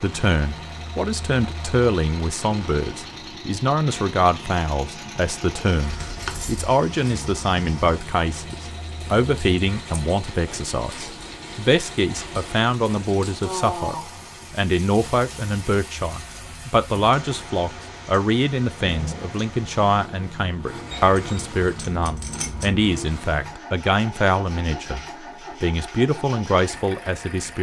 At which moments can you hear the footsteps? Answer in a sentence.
The footsteps can't be heard in this clip.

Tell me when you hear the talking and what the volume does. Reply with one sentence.
The talking can be heard from 0.0 to 27.5 s, at a steady volume.